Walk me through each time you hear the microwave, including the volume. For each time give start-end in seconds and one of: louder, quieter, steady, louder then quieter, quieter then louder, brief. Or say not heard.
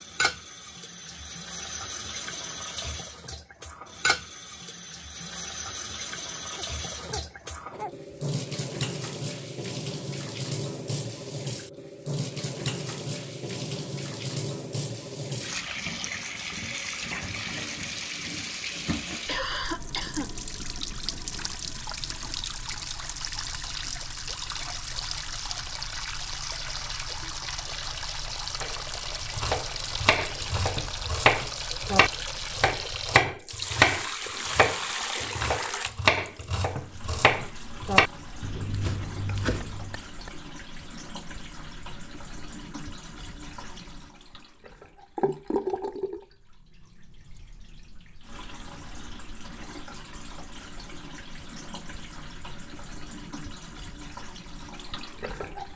not heard.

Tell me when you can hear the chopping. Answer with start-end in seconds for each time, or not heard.
28.6-40.0.